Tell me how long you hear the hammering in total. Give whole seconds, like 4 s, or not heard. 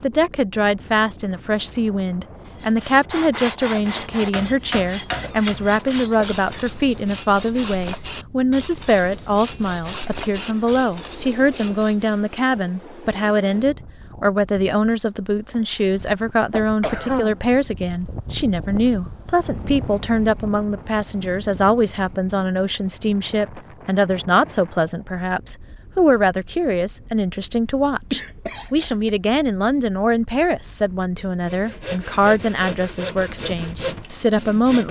2 s.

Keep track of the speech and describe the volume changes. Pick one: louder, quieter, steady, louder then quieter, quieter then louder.
steady.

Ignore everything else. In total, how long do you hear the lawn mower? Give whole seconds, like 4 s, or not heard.
not heard.